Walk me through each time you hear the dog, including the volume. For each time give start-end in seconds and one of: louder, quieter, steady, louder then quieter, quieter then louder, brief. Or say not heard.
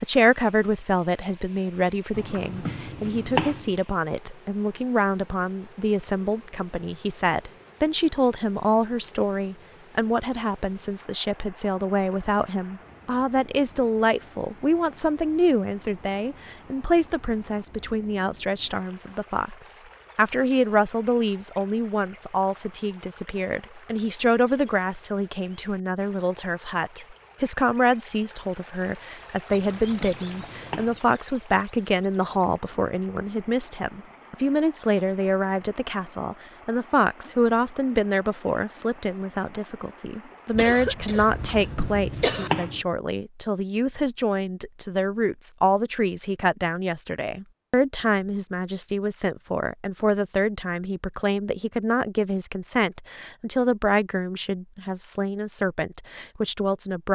not heard.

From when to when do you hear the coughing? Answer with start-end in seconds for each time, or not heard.
40.5-42.5.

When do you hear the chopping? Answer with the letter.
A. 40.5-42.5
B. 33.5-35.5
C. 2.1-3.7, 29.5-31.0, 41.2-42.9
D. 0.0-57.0
C.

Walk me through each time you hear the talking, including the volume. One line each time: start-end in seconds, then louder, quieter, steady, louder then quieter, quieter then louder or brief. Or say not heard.
0.0-57.0 steady.